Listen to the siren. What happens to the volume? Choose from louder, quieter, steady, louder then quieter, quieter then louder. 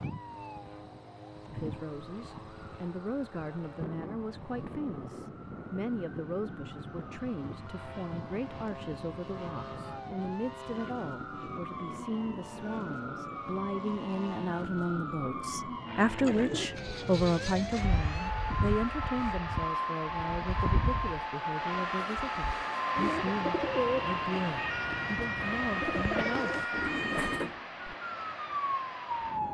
louder.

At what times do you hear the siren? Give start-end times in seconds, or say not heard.
0.0-29.5.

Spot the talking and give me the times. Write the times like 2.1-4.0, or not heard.
1.5-26.6.